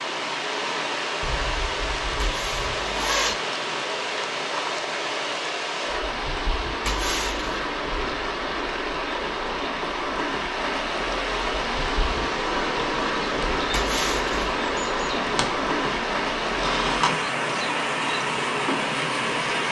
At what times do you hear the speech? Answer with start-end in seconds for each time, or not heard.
not heard.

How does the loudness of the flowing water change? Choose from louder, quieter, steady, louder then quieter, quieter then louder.
steady.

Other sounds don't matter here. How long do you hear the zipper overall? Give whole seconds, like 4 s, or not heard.
3 s.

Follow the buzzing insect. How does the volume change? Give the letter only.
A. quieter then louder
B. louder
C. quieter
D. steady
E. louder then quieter
D.